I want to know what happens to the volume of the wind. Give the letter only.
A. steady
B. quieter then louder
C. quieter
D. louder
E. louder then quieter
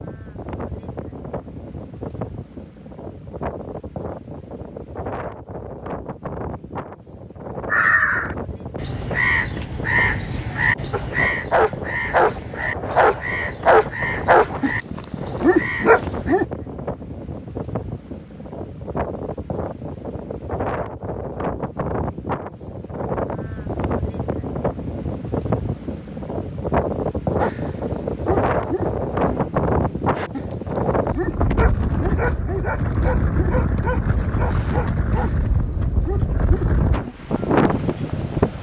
D.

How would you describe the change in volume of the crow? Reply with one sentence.
The loudness of the crow goes down.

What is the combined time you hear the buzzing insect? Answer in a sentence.
The buzzing insect can't be heard in this clip.